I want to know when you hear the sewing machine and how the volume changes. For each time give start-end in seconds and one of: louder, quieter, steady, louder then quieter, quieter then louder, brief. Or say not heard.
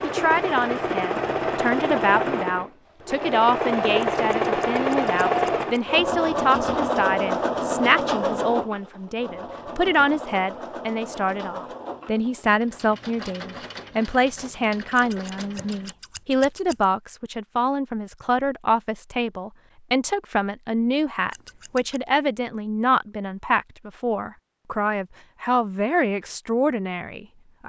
0.0-15.9 quieter.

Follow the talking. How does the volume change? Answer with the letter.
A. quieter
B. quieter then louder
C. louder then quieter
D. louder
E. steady
E.